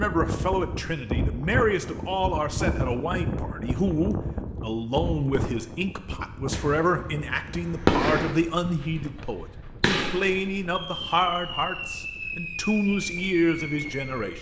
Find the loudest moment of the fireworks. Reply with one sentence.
The volume of the fireworks peaks at 8 seconds.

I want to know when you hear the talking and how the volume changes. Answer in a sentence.
The talking can be heard from 0.0 to 14.3 s, at a steady volume.